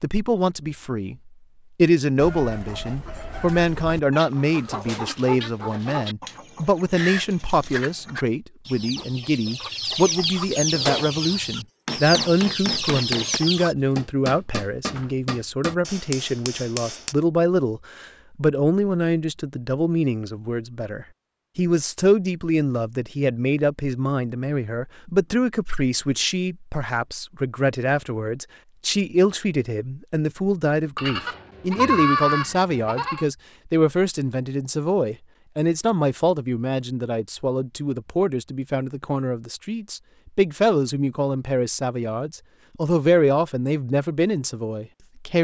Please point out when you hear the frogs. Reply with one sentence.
You can't hear the frogs here.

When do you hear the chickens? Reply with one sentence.
You can hear the chickens from 2.1 to 13.8 s.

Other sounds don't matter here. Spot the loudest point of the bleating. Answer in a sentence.
The volume of the bleating peaks at 32 seconds.